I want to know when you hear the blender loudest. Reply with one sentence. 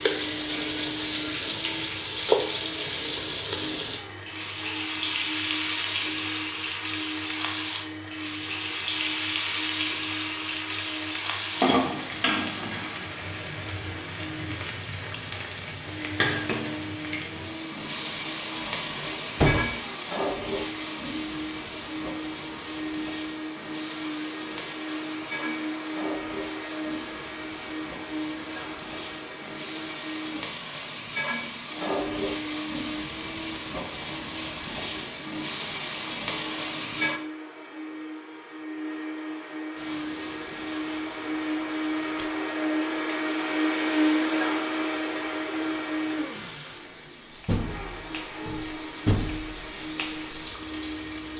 The volume of the blender peaks at 44 seconds.